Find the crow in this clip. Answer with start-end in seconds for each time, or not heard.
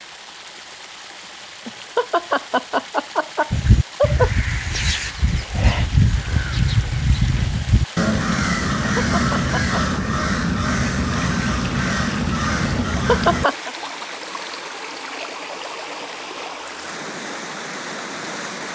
3.5-13.4.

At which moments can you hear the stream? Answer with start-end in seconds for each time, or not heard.
0.0-18.6.